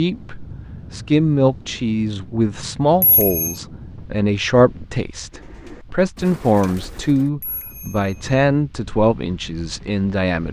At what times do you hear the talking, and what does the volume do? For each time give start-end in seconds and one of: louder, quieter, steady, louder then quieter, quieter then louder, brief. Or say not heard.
0.0-10.4 steady.